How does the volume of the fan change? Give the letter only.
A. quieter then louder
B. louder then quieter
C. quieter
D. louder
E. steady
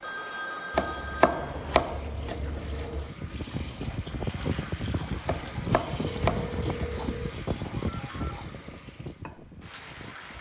C.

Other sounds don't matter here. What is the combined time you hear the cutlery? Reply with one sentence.
The cutlery can't be heard in this clip.